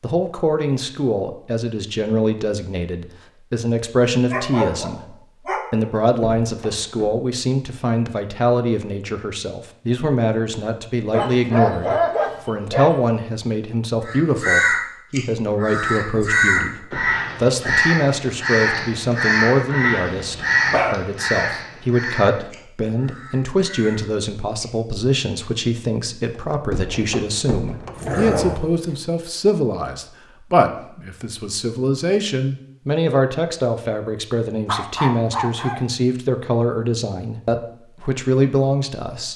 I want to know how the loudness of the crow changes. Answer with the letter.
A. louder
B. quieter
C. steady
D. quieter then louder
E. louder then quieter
B.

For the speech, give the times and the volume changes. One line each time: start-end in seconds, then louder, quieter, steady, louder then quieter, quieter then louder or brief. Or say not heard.
0.0-39.3 steady.